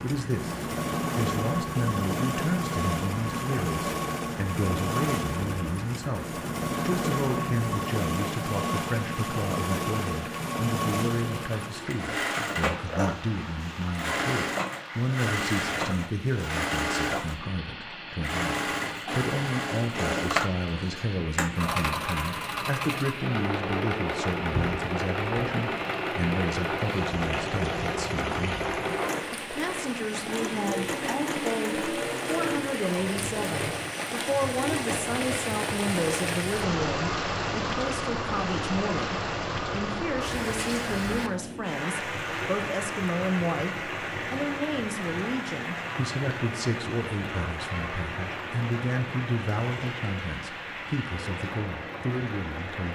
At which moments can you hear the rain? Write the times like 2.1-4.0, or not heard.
0.0-52.8.